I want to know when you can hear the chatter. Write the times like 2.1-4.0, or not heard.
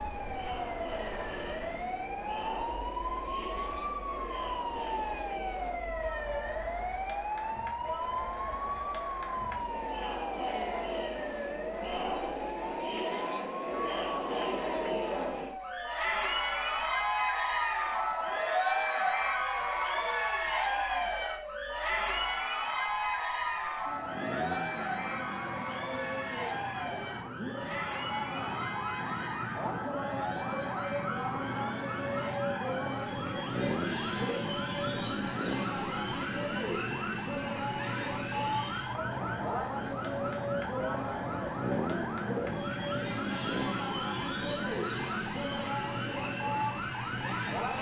0.0-47.7.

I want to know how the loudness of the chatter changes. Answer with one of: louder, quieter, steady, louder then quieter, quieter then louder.
louder then quieter.